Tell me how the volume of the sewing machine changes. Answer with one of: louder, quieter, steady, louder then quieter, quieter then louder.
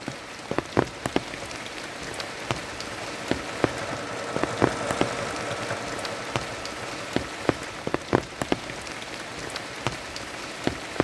louder then quieter.